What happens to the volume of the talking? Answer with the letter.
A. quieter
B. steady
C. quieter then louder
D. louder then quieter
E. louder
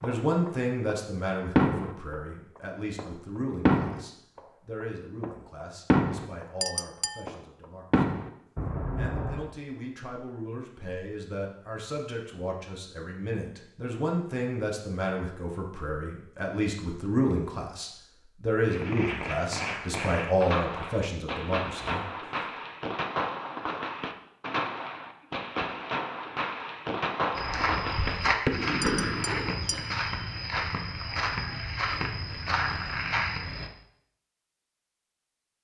C.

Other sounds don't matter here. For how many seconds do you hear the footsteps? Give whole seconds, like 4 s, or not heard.
6 s.